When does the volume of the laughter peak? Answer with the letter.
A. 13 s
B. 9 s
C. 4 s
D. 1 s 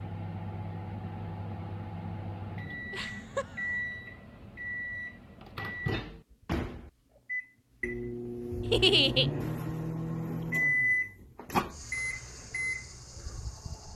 B.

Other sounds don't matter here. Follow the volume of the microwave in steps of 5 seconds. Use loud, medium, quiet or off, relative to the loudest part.
medium, loud, loud.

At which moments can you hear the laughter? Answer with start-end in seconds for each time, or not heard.
2.9-3.8, 8.7-9.3.